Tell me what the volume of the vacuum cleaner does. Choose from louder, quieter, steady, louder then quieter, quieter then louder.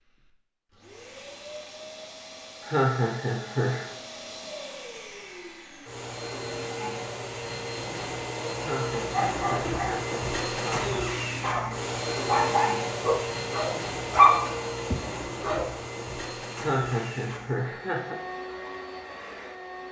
louder then quieter.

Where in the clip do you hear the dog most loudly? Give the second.
14 s.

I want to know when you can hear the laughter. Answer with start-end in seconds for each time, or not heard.
2.6-3.9, 8.6-11.1, 16.6-18.1.